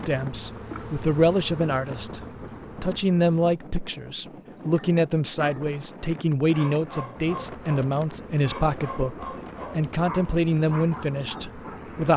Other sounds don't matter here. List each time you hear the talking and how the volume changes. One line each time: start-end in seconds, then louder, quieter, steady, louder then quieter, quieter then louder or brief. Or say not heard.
0.1-2.2 brief
2.8-12.1 steady.